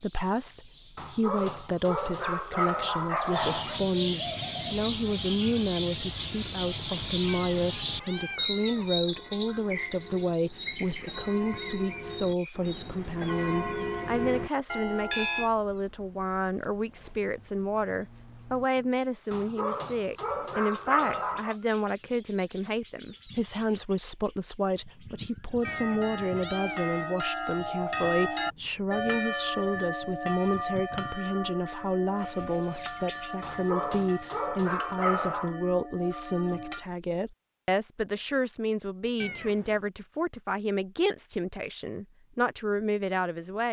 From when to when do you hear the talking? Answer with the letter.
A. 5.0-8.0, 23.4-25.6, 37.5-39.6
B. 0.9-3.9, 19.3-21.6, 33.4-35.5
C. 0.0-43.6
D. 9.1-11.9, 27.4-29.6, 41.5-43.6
C.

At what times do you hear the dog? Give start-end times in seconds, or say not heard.
0.9-3.9, 19.3-21.6, 33.4-35.5.